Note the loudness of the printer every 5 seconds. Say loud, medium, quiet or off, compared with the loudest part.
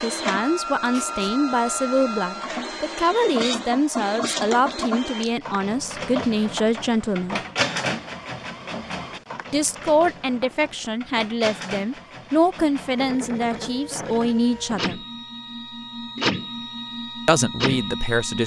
loud, loud, medium, loud.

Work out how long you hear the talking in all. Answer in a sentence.
The talking can be heard for 14 seconds in total.